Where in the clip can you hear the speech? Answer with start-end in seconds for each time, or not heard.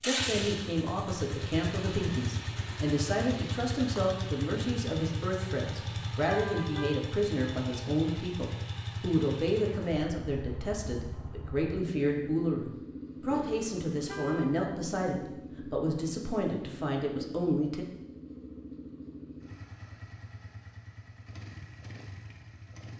0.0-17.9.